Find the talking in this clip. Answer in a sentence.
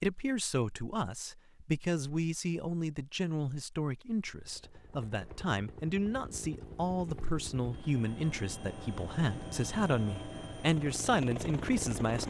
The talking can be heard from 0.0 to 12.2 s.